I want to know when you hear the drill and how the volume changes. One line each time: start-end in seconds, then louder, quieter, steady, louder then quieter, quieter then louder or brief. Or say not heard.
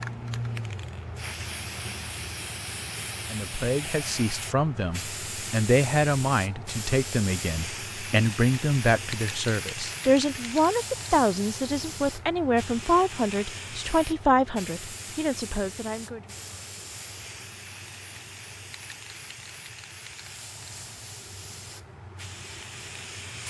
not heard.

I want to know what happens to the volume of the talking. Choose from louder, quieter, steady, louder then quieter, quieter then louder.
steady.